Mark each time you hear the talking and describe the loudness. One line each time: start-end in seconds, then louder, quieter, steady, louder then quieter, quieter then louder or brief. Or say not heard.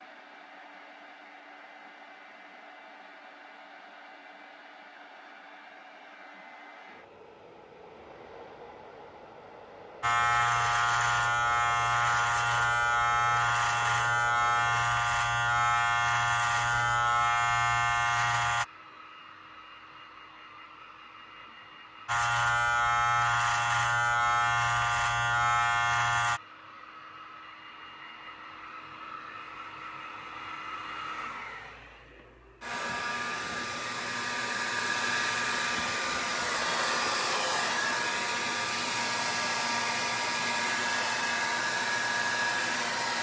not heard.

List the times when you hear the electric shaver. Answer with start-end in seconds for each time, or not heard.
10.0-18.6, 22.1-26.4.